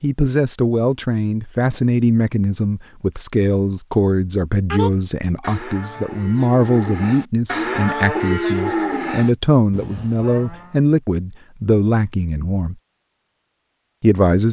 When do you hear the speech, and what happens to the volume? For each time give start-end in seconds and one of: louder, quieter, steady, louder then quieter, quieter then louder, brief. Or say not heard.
0.0-12.8 steady
14.0-14.4 brief.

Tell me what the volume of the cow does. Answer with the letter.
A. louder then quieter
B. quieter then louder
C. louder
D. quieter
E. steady
A.